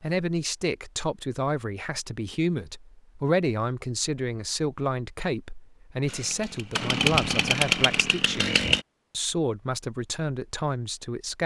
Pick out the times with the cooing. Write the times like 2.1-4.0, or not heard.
not heard.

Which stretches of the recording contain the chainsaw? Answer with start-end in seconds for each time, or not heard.
6.0-8.8.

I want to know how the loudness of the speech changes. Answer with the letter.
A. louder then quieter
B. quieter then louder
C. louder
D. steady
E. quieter
D.